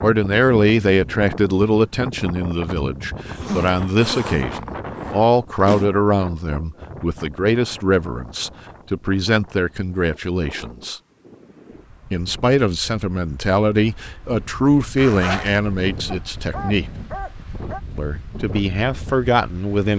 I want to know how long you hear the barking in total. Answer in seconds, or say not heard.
2 s.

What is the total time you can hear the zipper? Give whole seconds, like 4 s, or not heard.
3 s.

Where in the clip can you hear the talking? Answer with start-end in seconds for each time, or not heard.
0.0-11.0, 12.1-16.9, 17.9-19.9.